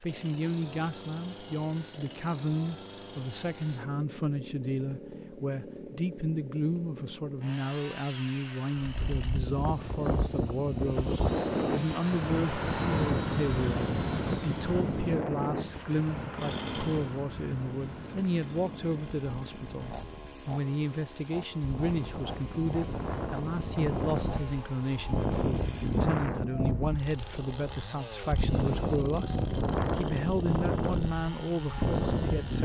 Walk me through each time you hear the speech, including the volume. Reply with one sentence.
The speech can be heard from 0.0 to 32.6 s, at a steady volume.